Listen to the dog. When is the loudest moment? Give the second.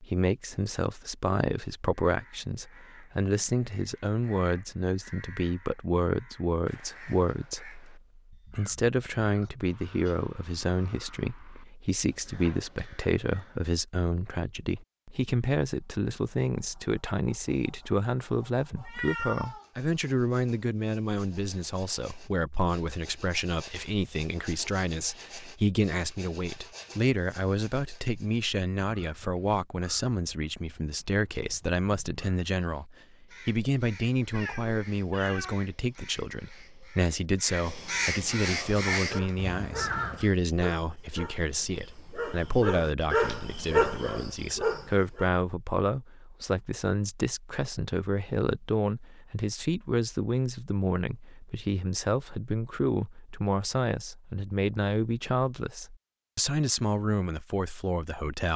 44 s.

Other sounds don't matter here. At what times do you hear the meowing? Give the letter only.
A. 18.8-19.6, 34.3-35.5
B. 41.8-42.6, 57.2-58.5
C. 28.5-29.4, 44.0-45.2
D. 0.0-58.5
A.